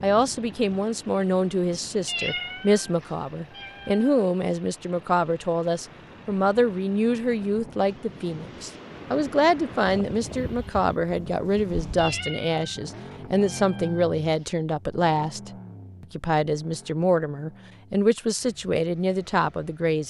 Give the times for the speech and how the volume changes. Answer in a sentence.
You can hear the speech from 0.0 to 20.0 s, at a steady volume.